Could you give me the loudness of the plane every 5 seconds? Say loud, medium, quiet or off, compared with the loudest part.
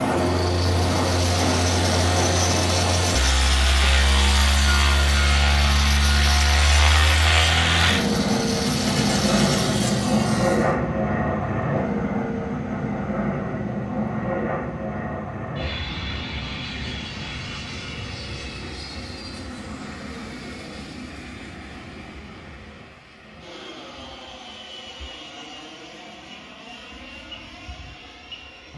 loud, loud, loud, medium, quiet, quiet.